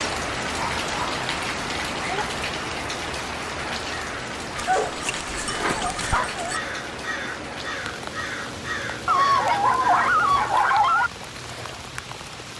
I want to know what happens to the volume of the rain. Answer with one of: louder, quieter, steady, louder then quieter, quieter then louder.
quieter.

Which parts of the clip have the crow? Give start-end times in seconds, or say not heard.
3.8-10.5.